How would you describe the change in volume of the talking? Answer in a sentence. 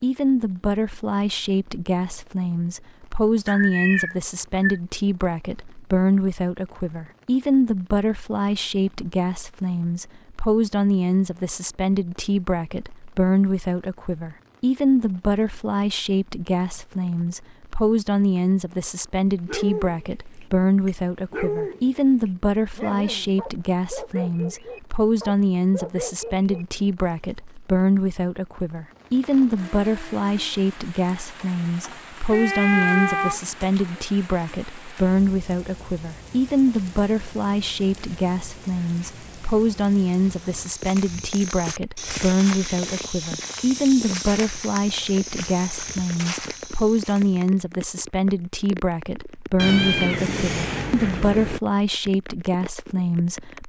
The volume of the talking stays about the same.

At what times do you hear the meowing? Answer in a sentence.
The meowing can be heard from 3.5 to 4.8 s, from 32.3 to 33.4 s and from 49.5 to 51.6 s.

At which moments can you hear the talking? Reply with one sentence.
The talking can be heard from 0.0 to 53.6 s.